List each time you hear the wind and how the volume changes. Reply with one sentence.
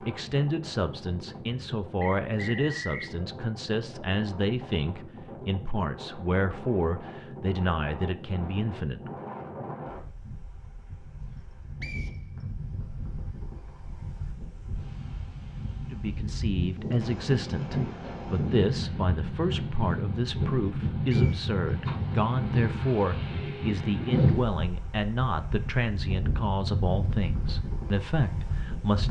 You can hear the wind from 0.0 to 29.0 s, getting louder.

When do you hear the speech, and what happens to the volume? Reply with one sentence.
The speech can be heard from 0.0 to 9.2 s, at a steady volume; and from 15.9 to 29.0 s, at a steady volume.